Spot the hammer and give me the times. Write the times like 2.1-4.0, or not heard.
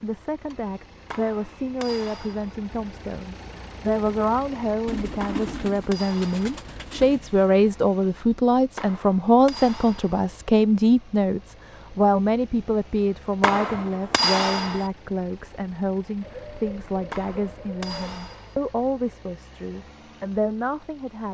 1.1-2.5, 5.2-6.5, 8.8-10.2, 13.4-14.9, 17.1-18.6.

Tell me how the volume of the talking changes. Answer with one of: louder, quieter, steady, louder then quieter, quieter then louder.
louder then quieter.